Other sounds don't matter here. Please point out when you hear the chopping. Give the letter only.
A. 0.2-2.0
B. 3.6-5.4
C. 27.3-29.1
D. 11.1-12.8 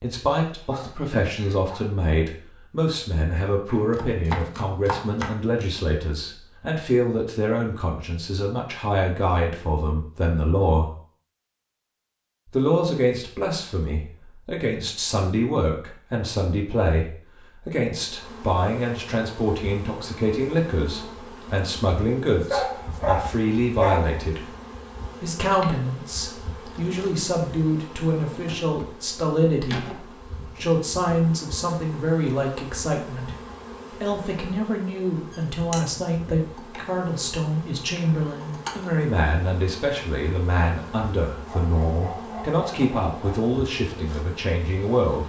B.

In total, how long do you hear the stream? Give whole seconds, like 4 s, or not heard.
not heard.